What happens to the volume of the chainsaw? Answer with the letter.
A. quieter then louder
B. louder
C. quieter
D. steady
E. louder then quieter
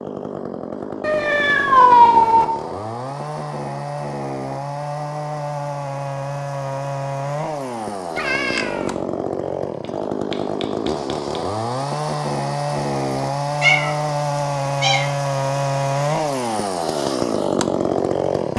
B.